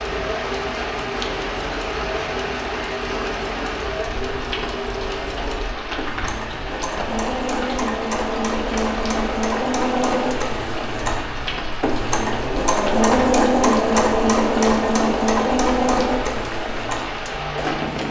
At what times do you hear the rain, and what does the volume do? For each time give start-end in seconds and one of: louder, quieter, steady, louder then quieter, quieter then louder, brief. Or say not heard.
0.0-18.0 steady.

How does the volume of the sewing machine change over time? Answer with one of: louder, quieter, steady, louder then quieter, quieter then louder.
louder.